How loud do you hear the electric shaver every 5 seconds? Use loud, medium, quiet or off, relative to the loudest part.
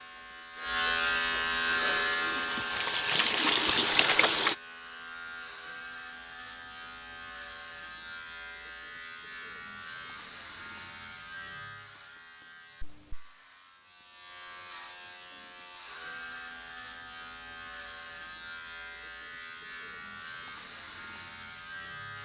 loud, quiet, quiet, quiet, quiet.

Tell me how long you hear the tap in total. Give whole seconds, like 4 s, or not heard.
3 s.